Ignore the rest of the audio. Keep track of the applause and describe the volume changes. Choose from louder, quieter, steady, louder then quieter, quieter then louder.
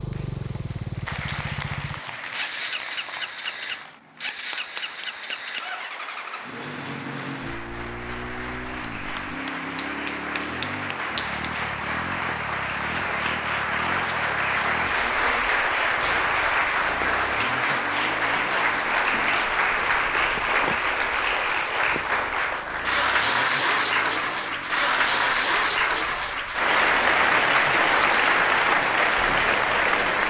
louder.